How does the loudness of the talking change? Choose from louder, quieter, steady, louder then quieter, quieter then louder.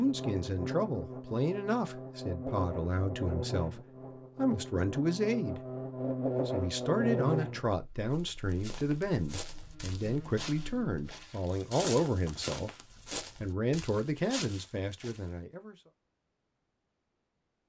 steady.